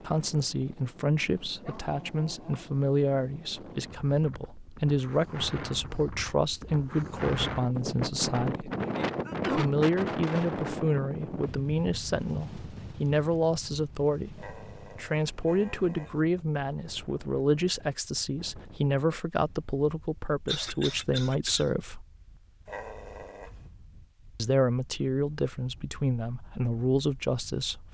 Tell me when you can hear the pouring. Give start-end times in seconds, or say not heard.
not heard.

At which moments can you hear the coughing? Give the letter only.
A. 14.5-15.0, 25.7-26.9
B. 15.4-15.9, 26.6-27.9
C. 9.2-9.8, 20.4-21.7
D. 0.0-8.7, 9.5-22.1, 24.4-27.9
C.